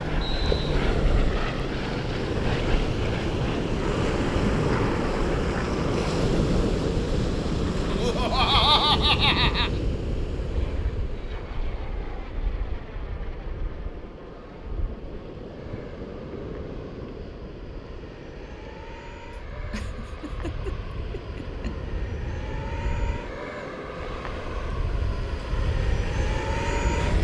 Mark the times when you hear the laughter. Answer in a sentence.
The laughter can be heard from 7.9 to 9.7 s and from 19.7 to 21.8 s.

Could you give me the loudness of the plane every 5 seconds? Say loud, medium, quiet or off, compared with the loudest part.
loud, loud, quiet, quiet, medium, loud.